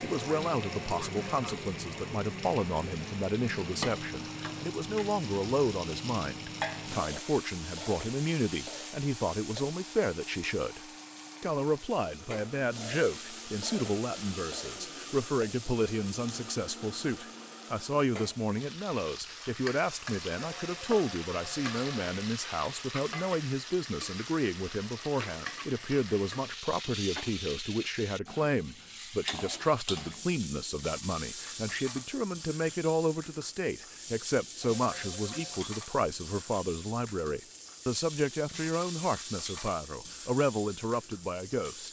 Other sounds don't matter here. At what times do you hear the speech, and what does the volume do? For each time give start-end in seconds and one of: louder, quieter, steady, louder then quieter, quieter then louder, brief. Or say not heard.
0.0-10.8 steady
11.4-41.8 steady.